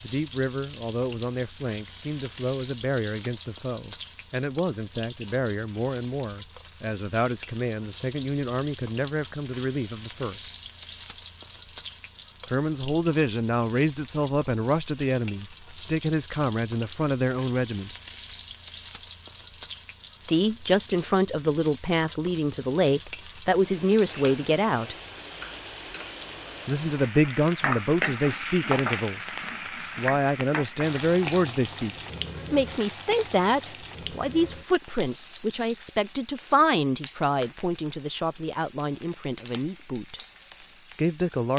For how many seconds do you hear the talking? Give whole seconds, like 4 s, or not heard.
34 s.